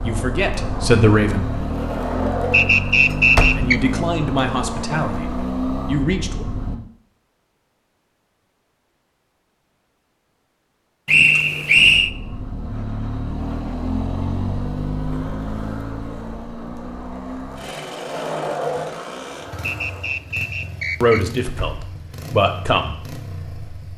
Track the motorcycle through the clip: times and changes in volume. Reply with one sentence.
You can hear the motorcycle from 0.0 to 6.8 s, at a steady volume; and from 11.8 to 23.9 s, getting quieter.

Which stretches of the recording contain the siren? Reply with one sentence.
You can't hear the siren here.